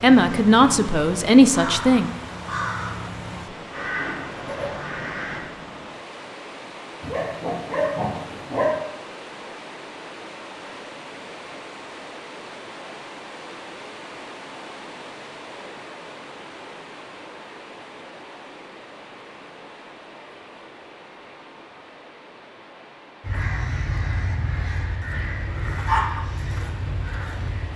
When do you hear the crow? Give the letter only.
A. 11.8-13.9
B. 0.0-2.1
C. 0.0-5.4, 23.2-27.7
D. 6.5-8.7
C.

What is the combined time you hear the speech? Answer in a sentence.
The speech can be heard for 2 seconds in total.